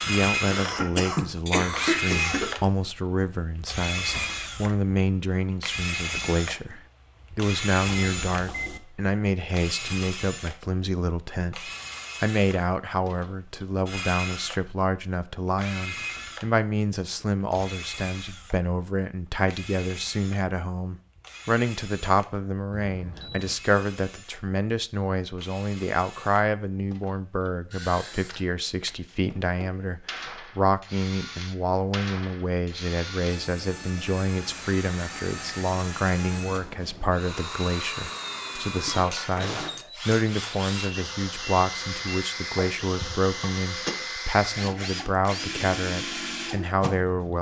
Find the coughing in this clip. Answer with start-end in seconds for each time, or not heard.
0.5-2.5, 42.5-43.9.